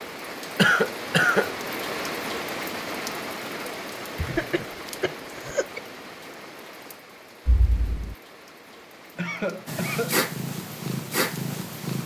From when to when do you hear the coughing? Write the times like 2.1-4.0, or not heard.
0.6-1.5, 4.2-5.8, 9.2-10.2.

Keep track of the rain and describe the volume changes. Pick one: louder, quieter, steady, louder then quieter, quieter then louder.
quieter.